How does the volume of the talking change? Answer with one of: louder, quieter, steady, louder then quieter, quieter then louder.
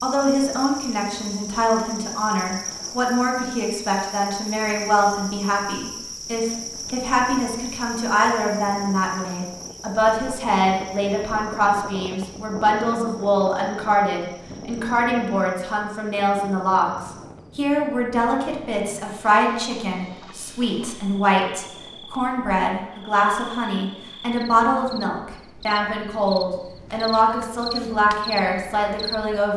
steady.